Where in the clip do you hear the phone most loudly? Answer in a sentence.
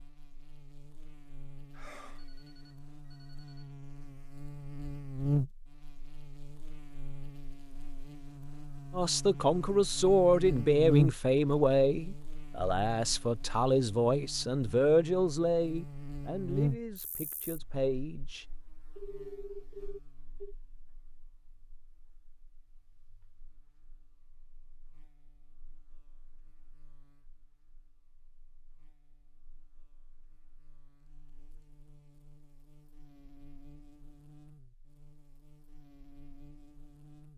The volume of the phone peaks at 19 seconds.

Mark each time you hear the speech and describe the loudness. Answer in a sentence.
The speech can be heard from 8.9 to 18.4 s, getting quieter.